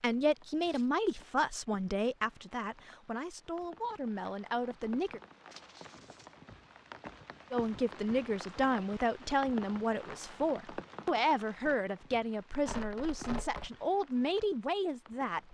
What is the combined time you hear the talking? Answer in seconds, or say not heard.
13 s.